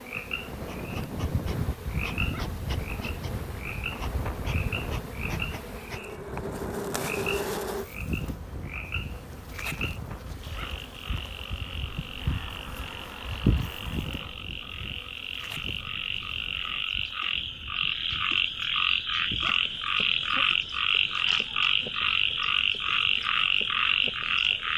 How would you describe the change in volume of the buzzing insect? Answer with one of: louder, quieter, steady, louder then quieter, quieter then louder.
quieter.